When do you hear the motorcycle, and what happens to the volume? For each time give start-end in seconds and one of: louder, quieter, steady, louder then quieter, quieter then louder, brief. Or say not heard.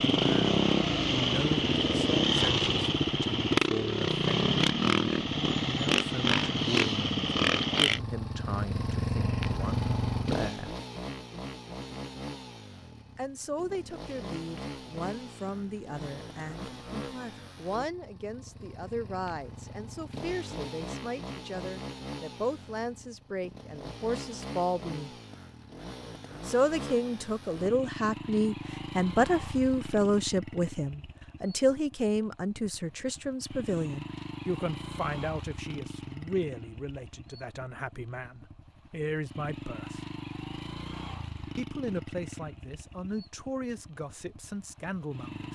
0.0-45.5 quieter.